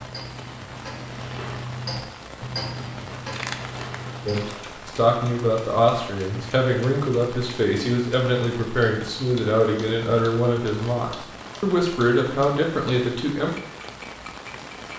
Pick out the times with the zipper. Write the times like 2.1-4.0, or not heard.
not heard.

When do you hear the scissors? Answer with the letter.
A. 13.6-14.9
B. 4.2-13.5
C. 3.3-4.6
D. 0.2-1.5
C.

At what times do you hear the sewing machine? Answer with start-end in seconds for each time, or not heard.
not heard.